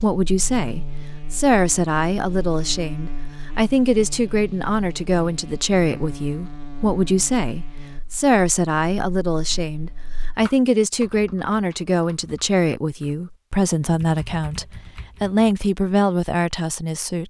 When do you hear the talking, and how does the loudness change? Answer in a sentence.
You can hear the talking from 0.0 to 17.2 s, at a steady volume.